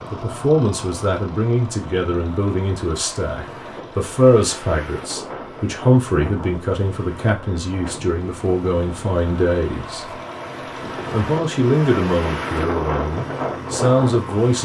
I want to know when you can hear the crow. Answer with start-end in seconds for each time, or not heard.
not heard.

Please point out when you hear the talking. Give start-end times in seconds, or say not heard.
0.1-10.2, 11.1-14.6.